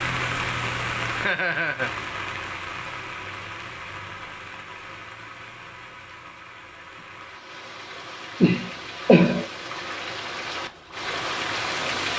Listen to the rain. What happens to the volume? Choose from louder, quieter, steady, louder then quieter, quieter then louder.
quieter then louder.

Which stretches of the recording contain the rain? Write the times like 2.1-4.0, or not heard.
0.0-12.1.